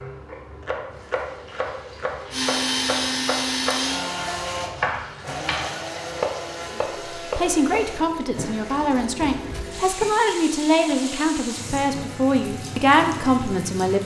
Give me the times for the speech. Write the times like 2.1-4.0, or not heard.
6.8-14.0.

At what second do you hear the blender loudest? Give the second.
3 s.